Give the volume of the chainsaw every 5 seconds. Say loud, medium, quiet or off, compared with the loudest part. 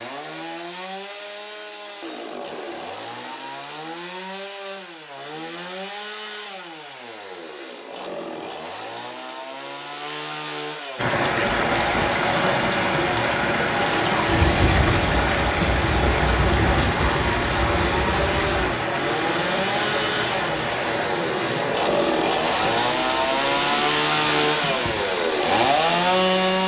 quiet, quiet, medium, medium, loud, loud.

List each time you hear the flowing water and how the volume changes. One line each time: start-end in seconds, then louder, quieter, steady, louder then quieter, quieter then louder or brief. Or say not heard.
10.9-26.6 quieter.